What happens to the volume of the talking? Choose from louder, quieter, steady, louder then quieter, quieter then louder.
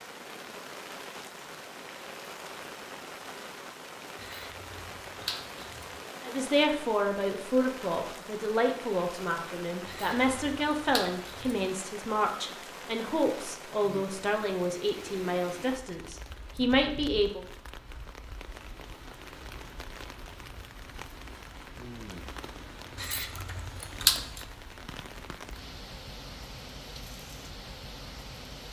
steady.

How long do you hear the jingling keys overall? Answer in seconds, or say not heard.
5 s.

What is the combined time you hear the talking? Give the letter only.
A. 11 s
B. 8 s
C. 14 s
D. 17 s
A.